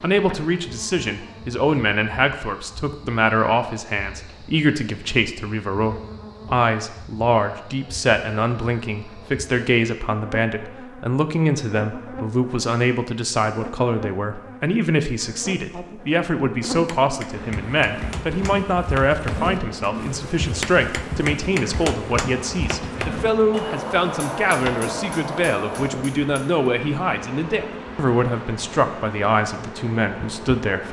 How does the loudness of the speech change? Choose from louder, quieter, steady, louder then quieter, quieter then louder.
steady.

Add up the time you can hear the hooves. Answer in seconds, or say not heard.
8 s.